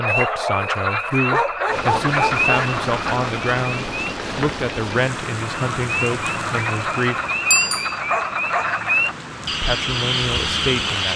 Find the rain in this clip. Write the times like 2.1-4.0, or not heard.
1.6-11.1.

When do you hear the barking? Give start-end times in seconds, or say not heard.
0.0-2.5, 8.1-8.7.